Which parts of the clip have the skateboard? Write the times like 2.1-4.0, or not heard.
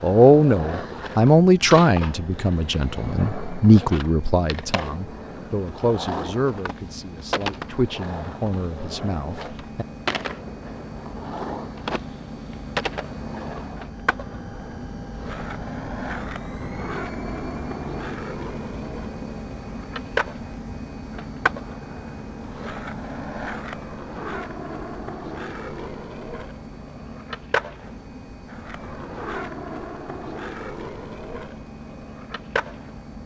0.0-33.0.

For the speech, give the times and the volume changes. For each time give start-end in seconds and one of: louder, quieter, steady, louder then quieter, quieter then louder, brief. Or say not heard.
0.0-9.8 quieter.